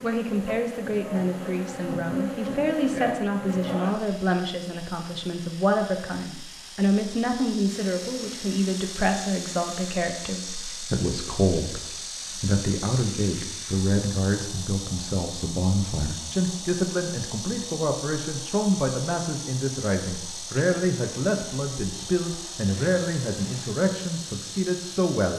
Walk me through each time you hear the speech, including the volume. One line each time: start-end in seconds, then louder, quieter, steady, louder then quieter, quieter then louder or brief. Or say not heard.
0.0-25.3 steady.